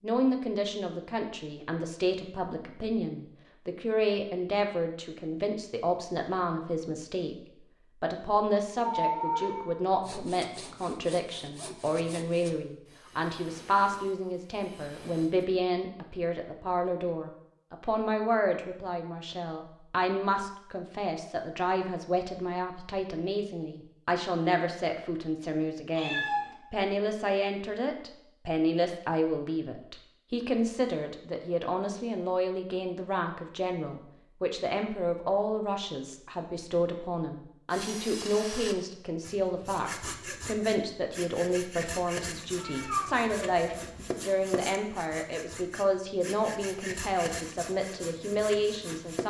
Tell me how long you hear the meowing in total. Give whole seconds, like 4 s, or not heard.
3 s.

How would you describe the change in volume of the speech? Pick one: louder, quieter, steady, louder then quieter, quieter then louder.
steady.